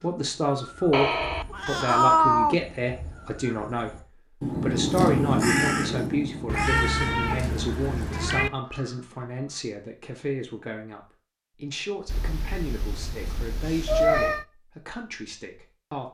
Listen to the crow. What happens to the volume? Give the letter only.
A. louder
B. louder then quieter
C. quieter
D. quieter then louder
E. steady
B.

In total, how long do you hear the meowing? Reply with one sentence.
You can hear the meowing for 6 seconds altogether.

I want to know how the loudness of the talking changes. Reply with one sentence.
The volume of the talking goes down.